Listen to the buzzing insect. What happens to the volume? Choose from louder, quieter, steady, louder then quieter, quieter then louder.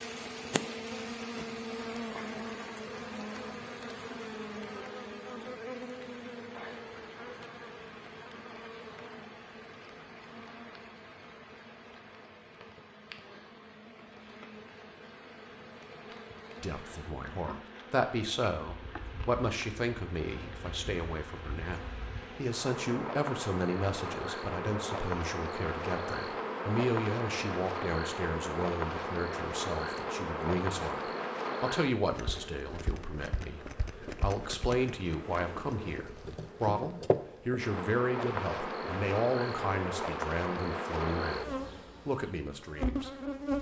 quieter then louder.